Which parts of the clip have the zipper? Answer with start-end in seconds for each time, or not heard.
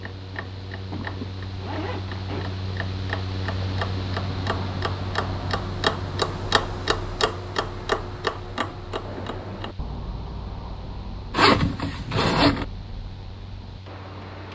0.3-2.6, 11.3-12.7.